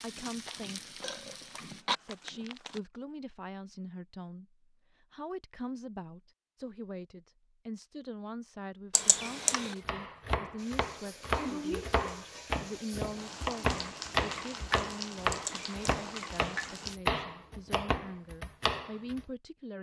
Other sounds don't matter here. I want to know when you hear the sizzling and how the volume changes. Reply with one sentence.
You can hear the sizzling briefly from 0.0 to 1.9 s; and from 10.6 to 17.0 s, getting quieter then louder.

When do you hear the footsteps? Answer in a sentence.
The footsteps can be heard from 0.0 to 2.8 s.